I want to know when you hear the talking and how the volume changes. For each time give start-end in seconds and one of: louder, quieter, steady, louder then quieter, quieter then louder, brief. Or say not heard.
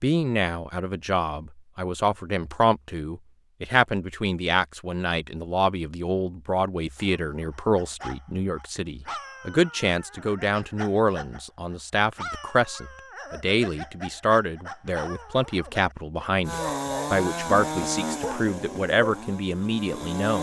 0.0-20.3 steady.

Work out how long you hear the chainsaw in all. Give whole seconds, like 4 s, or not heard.
4 s.